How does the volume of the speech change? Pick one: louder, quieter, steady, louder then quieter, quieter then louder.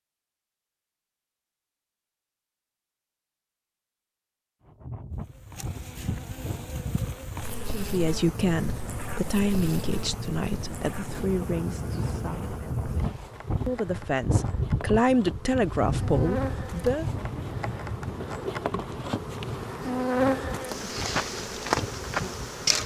quieter then louder.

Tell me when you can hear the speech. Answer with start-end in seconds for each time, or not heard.
7.7-17.1.